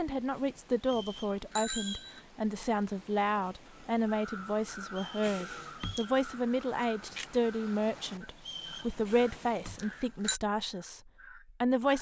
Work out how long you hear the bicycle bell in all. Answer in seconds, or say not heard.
4 s.